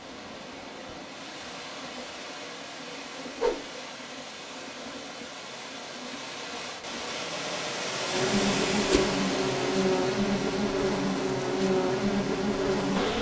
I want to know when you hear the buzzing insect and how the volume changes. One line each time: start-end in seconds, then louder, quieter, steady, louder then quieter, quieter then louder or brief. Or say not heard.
0.0-13.1 louder.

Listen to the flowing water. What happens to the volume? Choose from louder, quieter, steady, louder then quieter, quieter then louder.
louder then quieter.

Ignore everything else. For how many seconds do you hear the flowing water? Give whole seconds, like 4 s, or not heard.
13 s.